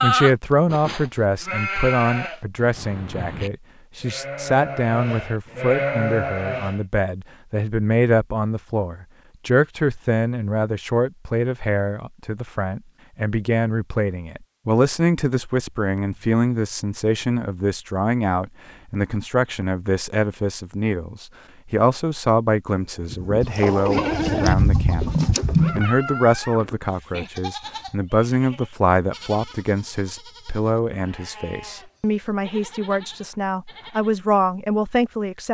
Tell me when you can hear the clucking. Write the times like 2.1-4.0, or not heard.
23.4-25.8.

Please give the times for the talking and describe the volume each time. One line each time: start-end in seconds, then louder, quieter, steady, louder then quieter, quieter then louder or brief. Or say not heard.
0.0-35.4 steady.